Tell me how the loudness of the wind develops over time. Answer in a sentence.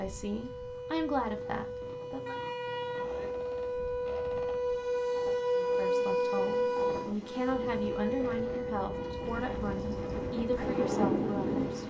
The volume of the wind goes up.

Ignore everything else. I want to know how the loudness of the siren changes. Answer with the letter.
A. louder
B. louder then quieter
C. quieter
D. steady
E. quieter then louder
B.